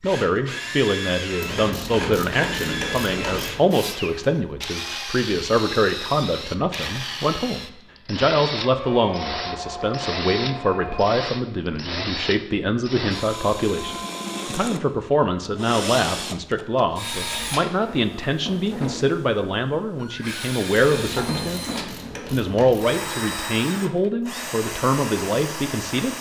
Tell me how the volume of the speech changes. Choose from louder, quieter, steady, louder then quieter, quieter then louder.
steady.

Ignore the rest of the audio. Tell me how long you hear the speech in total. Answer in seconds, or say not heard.
26 s.